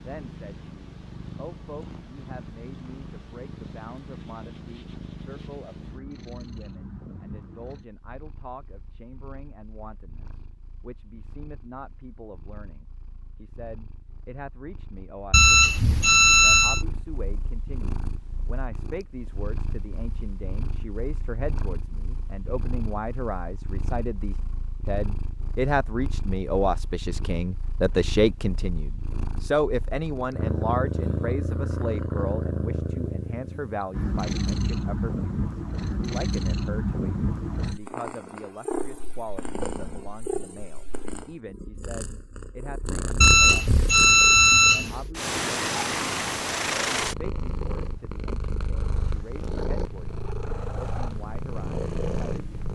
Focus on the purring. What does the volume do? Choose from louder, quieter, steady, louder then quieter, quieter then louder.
louder.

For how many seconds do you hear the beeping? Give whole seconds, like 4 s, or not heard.
3 s.